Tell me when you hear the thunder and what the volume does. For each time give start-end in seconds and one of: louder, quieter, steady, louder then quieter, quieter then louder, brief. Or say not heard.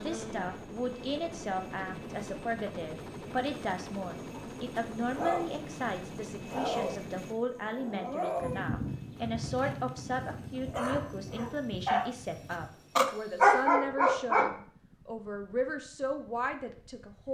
8.3-12.7 quieter.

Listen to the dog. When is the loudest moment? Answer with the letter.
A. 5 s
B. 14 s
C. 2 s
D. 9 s
B.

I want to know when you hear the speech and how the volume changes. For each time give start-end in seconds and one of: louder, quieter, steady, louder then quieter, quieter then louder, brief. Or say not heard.
0.0-17.3 steady.